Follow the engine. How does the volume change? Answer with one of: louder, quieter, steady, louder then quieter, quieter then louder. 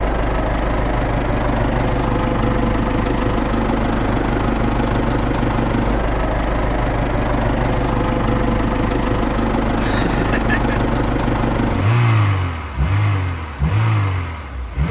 steady.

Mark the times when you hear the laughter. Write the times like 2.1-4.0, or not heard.
9.8-10.8.